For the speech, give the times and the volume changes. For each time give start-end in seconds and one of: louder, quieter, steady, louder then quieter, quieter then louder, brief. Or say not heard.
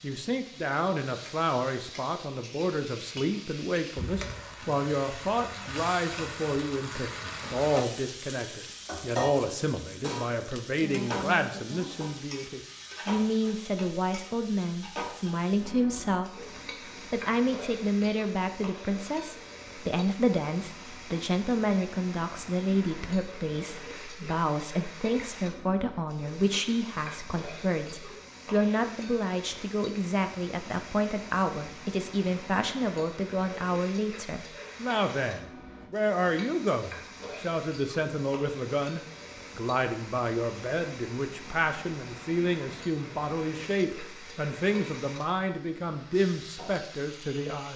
0.0-16.3 steady
17.1-47.7 steady.